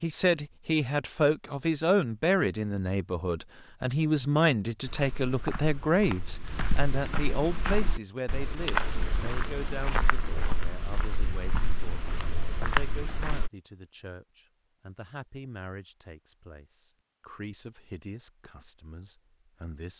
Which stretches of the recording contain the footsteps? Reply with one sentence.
You can hear the footsteps from 4.8 to 13.5 s.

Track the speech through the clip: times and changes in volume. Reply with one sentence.
You can hear the speech from 0.0 to 19.9 s, getting quieter.